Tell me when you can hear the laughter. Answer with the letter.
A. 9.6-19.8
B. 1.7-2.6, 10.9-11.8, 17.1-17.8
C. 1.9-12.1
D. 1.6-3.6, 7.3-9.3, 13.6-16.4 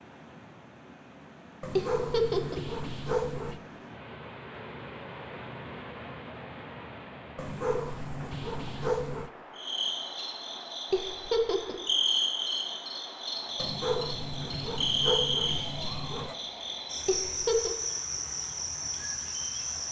B.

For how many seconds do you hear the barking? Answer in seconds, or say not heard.
7 s.